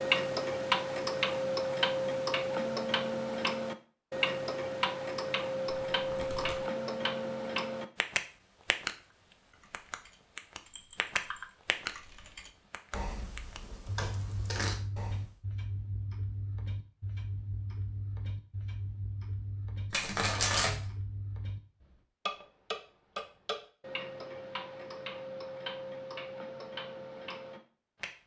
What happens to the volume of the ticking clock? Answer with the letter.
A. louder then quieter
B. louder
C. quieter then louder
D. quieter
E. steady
D.